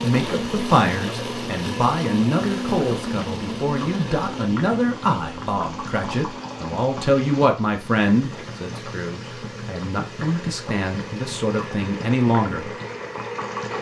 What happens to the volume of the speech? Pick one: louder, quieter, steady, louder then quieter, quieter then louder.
steady.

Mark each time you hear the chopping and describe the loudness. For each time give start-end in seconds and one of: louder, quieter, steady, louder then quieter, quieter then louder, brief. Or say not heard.
not heard.